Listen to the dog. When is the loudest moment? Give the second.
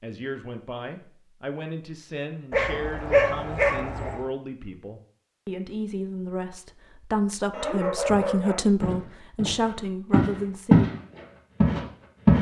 3 s.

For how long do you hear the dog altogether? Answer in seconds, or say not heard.
3 s.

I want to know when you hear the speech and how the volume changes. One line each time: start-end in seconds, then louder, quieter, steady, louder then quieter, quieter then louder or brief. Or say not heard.
0.0-10.9 louder.